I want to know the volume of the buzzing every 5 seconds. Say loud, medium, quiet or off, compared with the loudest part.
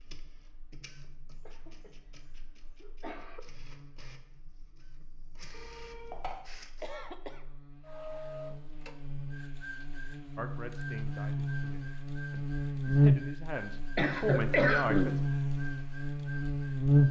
quiet, quiet, loud, loud.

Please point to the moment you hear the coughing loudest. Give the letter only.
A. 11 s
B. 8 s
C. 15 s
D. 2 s
C.